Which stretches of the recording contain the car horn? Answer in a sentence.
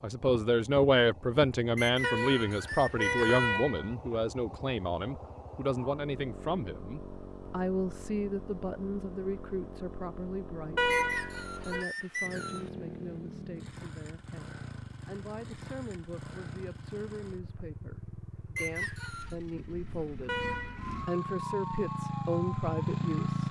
You can hear the car horn from 2.0 to 3.9 s, from 10.8 to 11.8 s and from 20.2 to 20.9 s.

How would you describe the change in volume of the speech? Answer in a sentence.
The volume of the speech goes down, then up.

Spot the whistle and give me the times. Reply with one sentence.
The whistle can be heard from 1.8 to 3.5 s, from 10.9 to 12.7 s and from 18.6 to 19.4 s.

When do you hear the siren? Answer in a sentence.
The siren can be heard from 20.8 to 23.4 s.